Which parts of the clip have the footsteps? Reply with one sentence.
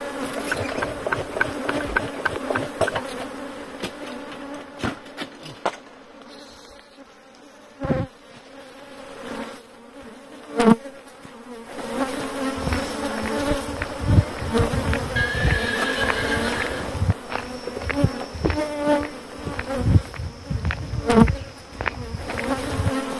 You can hear the footsteps from 12.6 to 22.9 s.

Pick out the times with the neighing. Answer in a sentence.
You can hear the neighing from 0.3 to 2.0 s and from 15.2 to 17.0 s.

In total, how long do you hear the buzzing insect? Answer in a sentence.
You can hear the buzzing insect for 23 seconds altogether.